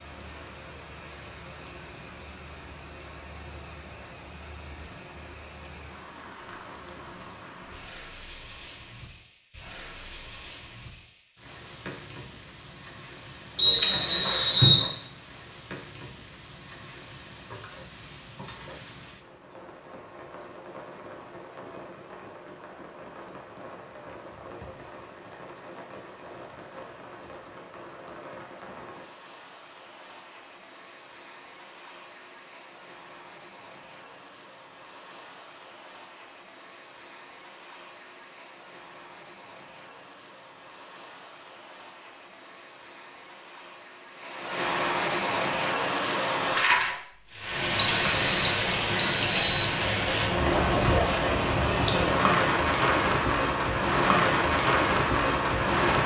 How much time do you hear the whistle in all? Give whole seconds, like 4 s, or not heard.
3 s.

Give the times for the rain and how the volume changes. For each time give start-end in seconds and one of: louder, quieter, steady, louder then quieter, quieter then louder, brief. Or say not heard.
0.0-56.0 louder.